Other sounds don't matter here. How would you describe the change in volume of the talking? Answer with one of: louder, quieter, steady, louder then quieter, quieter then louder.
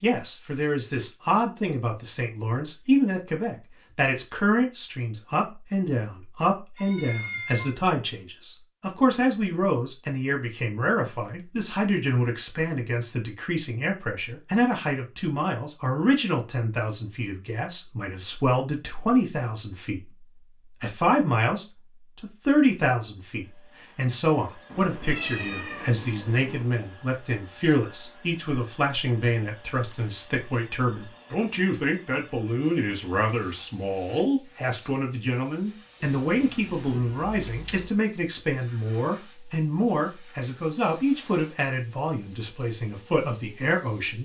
steady.